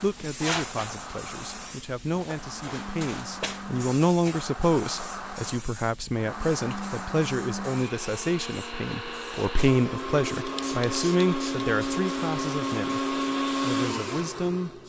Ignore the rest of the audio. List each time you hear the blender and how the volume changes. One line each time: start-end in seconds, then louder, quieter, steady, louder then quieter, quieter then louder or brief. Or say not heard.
0.0-14.8 louder.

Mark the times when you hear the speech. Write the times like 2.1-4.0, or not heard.
0.0-14.7.